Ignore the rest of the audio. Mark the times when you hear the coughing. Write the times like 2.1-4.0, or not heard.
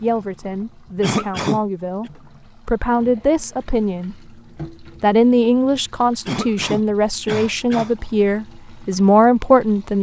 1.0-2.1, 6.2-8.0.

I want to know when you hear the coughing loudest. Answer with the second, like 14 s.
1 s.